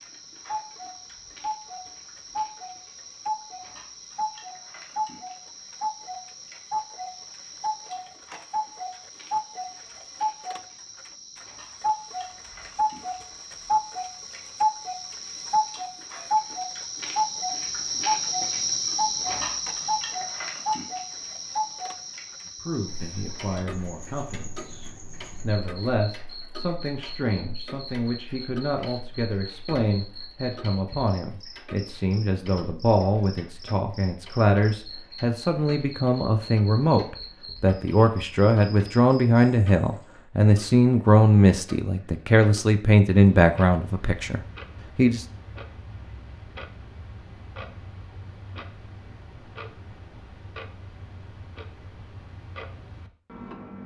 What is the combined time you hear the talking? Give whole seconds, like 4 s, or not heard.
23 s.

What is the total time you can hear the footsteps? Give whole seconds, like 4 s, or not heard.
not heard.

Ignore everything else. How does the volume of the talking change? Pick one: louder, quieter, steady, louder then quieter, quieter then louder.
louder.